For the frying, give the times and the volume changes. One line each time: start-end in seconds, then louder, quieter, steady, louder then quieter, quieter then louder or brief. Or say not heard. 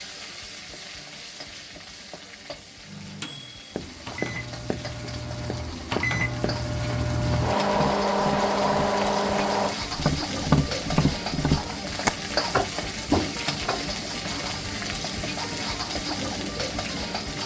0.0-17.4 louder.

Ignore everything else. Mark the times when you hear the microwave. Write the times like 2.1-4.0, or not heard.
2.9-9.8.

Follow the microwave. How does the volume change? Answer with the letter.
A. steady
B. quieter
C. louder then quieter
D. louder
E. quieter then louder
D.